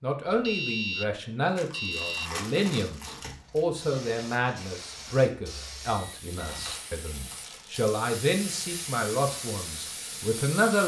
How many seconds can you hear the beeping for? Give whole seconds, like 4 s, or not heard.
3 s.